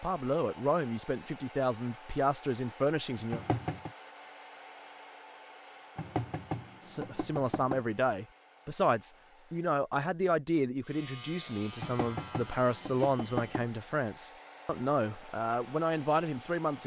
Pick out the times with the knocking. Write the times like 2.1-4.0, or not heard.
3.3-3.9, 6.0-7.8, 11.8-13.7.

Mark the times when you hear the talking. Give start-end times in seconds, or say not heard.
0.0-3.4, 6.8-16.8.